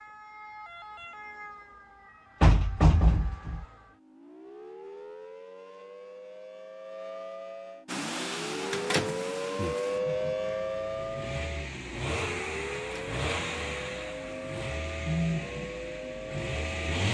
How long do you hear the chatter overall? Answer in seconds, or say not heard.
not heard.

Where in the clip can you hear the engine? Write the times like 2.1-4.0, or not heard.
7.8-17.0.